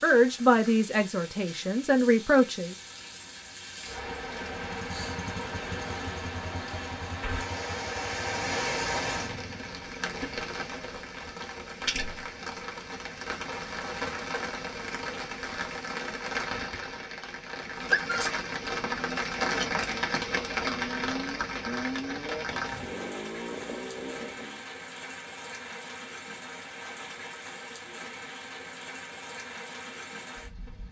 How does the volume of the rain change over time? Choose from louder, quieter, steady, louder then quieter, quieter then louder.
louder then quieter.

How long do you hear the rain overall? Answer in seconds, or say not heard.
31 s.